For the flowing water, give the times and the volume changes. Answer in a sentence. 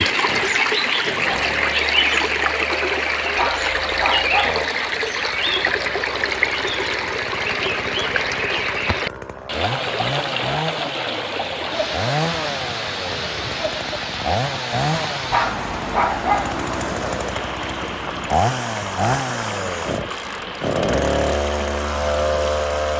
You can hear the flowing water from 0.0 to 22.9 s, getting quieter.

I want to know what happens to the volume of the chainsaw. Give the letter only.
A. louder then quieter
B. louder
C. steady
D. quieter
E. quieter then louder
B.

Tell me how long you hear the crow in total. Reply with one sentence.
The crow can't be heard in this clip.